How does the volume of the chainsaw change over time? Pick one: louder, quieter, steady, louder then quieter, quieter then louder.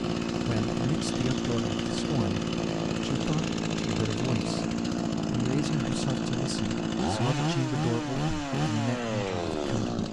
steady.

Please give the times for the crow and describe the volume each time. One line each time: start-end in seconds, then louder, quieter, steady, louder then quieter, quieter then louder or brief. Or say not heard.
not heard.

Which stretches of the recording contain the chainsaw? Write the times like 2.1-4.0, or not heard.
0.0-10.0.